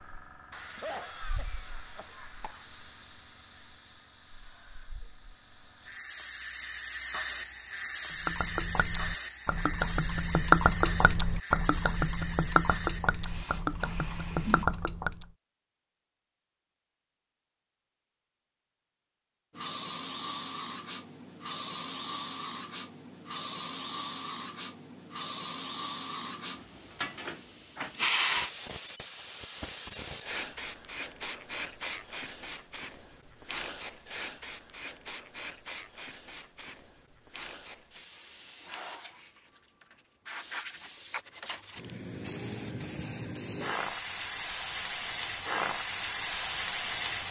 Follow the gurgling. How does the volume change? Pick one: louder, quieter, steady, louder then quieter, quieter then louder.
louder then quieter.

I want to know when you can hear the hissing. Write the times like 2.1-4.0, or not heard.
0.0-14.7, 19.6-47.2.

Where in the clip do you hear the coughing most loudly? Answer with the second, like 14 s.
1 s.